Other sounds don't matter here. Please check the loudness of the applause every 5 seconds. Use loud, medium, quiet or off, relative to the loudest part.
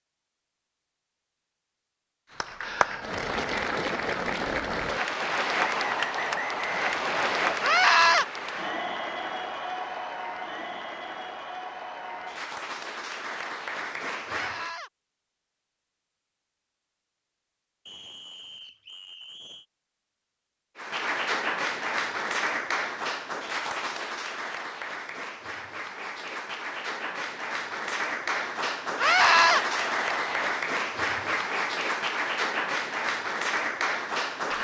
loud, loud, medium, off, loud, loud, loud.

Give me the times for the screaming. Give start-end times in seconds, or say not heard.
7.6-8.2, 14.3-14.9, 28.9-29.6.